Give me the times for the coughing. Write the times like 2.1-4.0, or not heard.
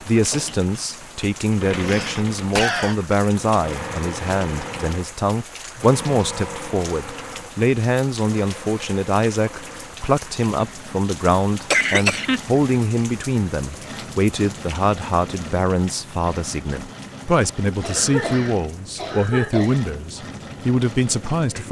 1.7-3.0, 11.7-12.4, 17.8-19.8.